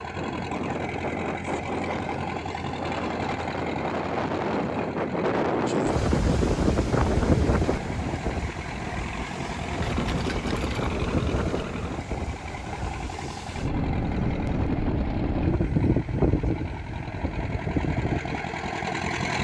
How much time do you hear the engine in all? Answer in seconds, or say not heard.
19 s.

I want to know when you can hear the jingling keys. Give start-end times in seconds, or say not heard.
9.7-10.9.